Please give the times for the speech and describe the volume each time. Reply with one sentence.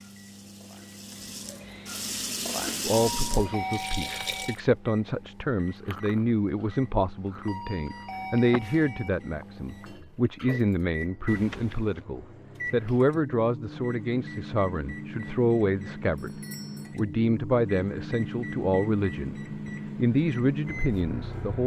You can hear the speech from 2.8 to 21.6 s, at a steady volume.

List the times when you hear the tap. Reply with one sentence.
The tap can be heard from 0.0 to 4.6 s.